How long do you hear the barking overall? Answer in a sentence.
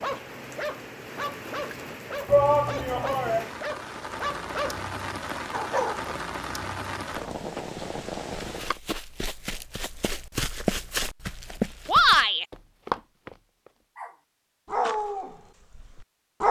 You can hear the barking for 8 seconds altogether.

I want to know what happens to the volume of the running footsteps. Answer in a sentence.
The loudness of the running footsteps goes up.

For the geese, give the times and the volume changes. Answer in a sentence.
You can't hear the geese here.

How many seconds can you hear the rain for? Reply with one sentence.
You can hear the rain for 9 seconds altogether.